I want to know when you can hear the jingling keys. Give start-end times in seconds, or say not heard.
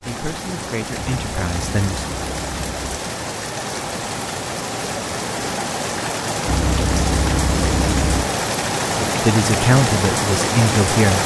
0.9-3.0, 6.5-8.3.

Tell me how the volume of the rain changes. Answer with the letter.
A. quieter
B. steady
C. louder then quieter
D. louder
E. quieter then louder
D.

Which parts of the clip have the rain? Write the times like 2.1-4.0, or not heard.
0.0-11.2.